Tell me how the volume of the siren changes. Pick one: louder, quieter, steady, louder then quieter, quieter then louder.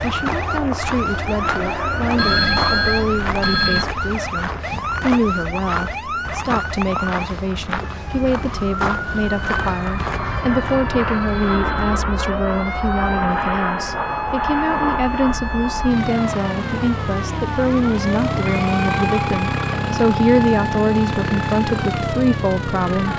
steady.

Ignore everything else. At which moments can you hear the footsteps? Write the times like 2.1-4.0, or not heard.
0.0-10.8.